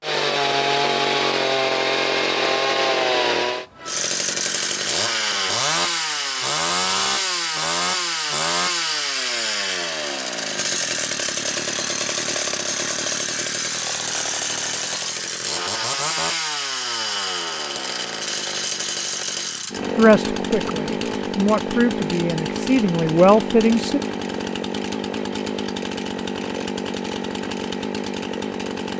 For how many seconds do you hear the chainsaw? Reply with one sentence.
You can hear the chainsaw for 29 seconds altogether.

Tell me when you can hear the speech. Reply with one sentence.
The speech can be heard from 19.9 to 24.0 s.